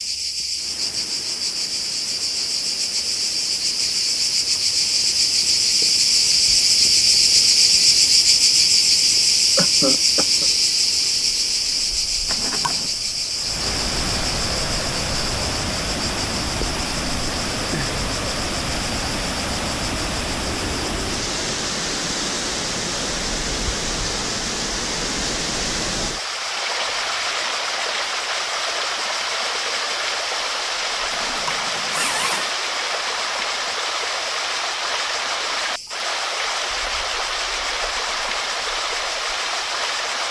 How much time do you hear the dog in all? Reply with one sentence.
You can't hear the dog here.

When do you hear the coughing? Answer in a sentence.
The coughing can be heard from 9.6 to 10.5 s.